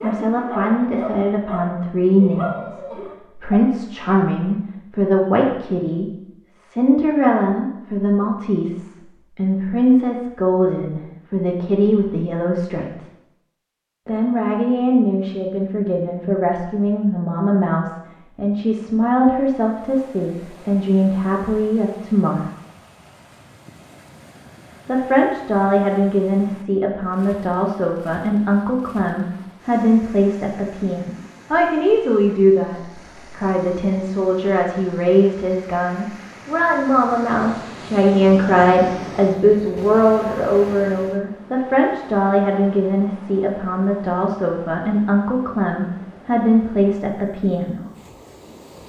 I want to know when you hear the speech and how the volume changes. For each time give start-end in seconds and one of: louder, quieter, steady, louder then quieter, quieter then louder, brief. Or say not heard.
0.0-13.1 steady
14.1-22.5 steady
24.9-47.9 steady.